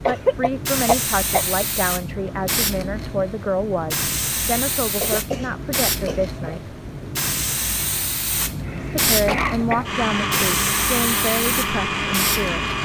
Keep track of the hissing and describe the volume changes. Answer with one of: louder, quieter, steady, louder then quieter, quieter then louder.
steady.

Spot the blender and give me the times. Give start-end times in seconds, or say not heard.
9.7-12.8.